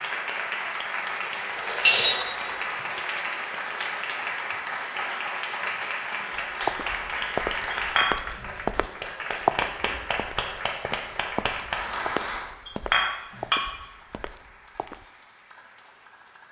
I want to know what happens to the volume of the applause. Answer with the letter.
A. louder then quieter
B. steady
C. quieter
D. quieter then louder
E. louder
C.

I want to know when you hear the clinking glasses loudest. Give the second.
2 s.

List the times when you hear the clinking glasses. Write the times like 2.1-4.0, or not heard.
1.5-3.0, 7.7-8.2, 12.7-13.6.